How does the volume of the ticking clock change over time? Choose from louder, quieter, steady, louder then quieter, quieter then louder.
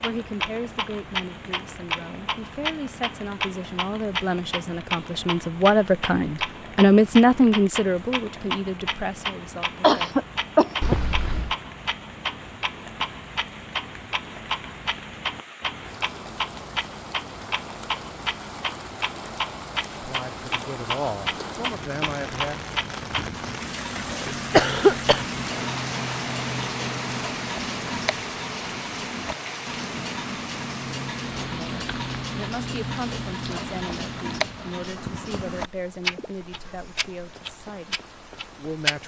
steady.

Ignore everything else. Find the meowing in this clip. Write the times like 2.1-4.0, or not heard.
10.8-11.6.